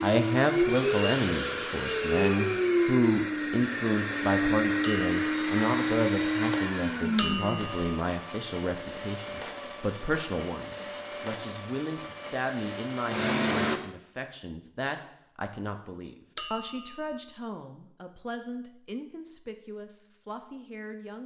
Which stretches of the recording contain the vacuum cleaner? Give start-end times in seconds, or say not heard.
0.0-13.8.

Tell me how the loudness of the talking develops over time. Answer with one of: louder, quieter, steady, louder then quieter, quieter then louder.
quieter.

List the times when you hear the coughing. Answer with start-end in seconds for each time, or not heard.
not heard.